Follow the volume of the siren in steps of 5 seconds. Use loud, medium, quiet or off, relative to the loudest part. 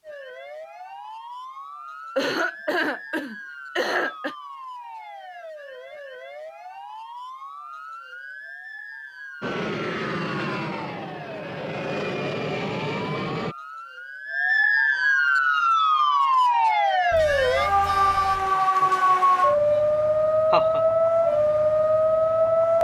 quiet, quiet, medium, loud, loud.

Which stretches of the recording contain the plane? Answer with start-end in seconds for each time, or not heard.
9.4-13.6.